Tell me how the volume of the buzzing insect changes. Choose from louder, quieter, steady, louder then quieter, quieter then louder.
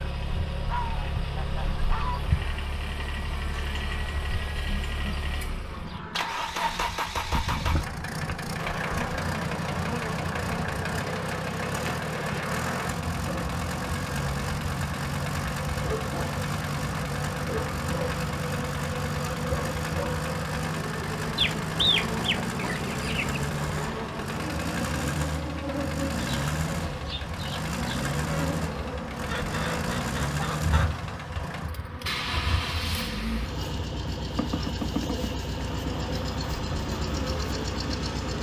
steady.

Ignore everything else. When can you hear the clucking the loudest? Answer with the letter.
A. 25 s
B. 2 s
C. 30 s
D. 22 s
D.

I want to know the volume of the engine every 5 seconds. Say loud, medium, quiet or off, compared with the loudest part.
medium, loud, loud, loud, loud, loud, loud, loud.